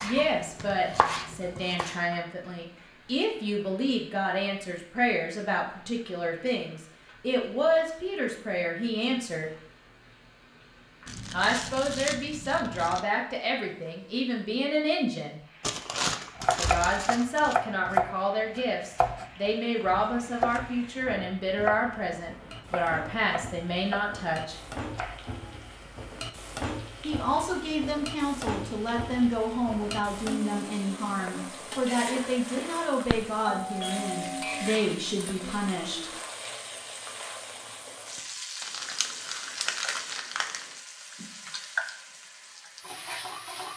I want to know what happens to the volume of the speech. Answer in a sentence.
The volume of the speech stays about the same.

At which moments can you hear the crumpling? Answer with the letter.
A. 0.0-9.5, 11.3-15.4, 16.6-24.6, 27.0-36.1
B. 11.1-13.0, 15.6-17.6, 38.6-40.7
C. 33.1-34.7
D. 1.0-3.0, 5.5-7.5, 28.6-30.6
B.